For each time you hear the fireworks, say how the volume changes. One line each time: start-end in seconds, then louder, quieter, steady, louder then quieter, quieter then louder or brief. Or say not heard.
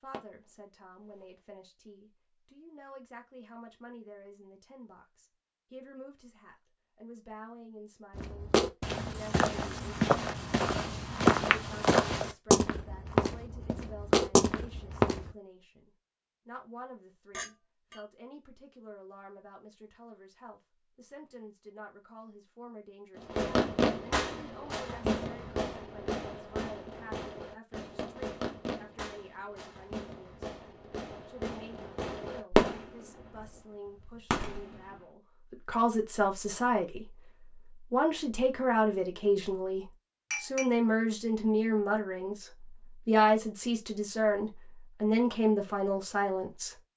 0.1-0.5 brief
23.1-33.5 quieter then louder
34.3-34.8 brief.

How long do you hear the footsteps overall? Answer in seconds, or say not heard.
7 s.